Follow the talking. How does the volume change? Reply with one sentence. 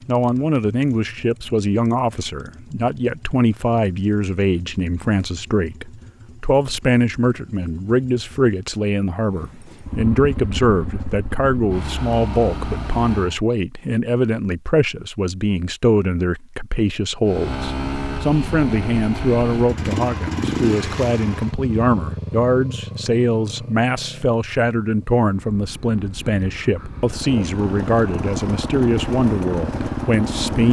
The volume of the talking stays about the same.